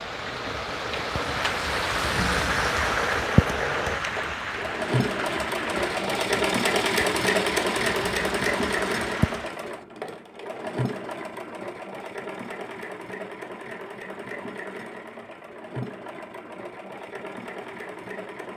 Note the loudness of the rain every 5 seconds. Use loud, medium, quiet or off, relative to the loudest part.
loud, medium, off, off.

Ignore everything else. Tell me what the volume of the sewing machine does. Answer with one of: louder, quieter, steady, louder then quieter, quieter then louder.
louder then quieter.